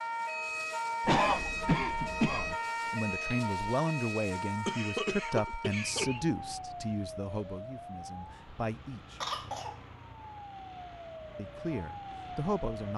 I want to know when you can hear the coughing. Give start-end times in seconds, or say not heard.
1.1-2.5, 4.7-6.2, 9.2-9.8.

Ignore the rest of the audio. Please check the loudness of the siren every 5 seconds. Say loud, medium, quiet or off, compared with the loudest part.
loud, medium, medium.